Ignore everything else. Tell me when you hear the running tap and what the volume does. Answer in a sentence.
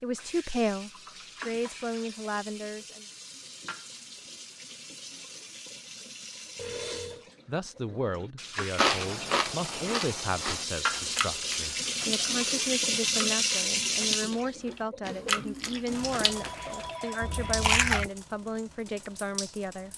You can hear the running tap from 0.1 to 19.9 s, getting louder then quieter.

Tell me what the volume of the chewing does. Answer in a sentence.
The loudness of the chewing goes down, then up.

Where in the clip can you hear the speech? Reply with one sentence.
You can hear the speech from 0.0 to 3.0 s and from 7.5 to 19.9 s.